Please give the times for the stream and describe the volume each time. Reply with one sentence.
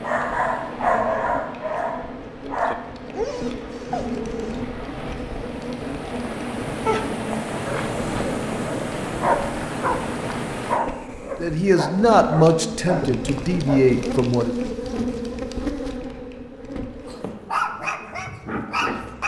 The stream can be heard from 0.0 to 10.8 s, getting louder.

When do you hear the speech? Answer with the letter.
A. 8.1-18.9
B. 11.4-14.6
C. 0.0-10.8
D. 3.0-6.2
B.